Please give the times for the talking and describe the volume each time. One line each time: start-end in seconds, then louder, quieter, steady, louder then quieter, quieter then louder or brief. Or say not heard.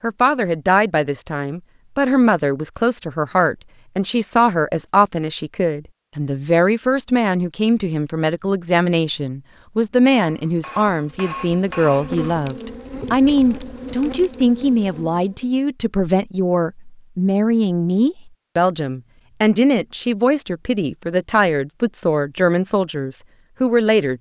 0.0-24.1 steady.